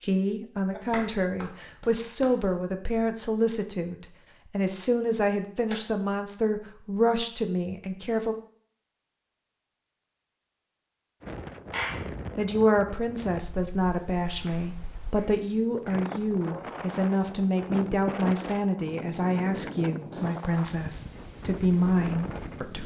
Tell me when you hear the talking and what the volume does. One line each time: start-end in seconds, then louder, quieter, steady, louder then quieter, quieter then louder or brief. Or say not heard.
0.0-8.3 steady
12.3-22.8 steady.